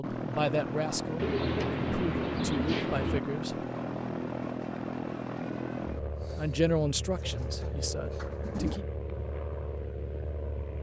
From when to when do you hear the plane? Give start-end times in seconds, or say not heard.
0.0-10.7.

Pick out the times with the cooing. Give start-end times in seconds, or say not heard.
1.1-3.2, 6.1-8.8.